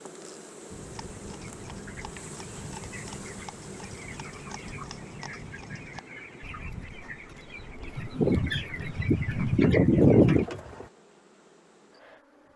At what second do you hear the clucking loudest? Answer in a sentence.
The volume of the clucking peaks at 10 seconds.